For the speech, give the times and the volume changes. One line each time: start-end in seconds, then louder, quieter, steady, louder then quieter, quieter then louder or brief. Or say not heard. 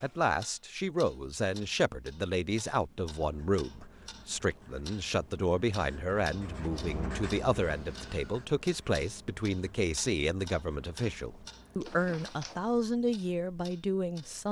0.0-14.4 steady.